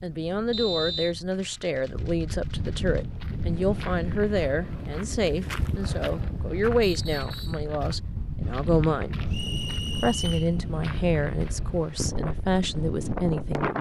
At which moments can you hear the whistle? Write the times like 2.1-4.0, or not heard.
0.5-1.1, 6.8-7.7, 9.3-10.5.